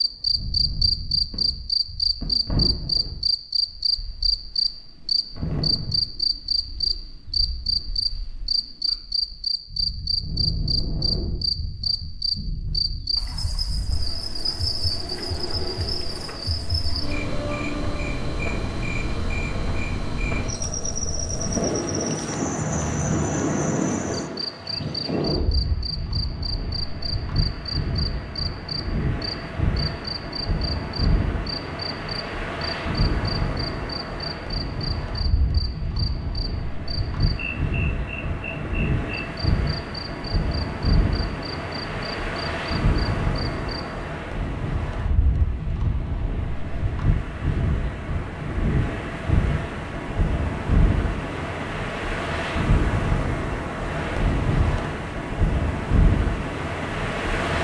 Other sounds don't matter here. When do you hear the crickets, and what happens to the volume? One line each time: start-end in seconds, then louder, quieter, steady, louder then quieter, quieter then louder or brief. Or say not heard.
0.0-43.8 quieter.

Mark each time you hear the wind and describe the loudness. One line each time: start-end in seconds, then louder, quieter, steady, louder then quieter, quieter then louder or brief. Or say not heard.
0.0-57.5 louder.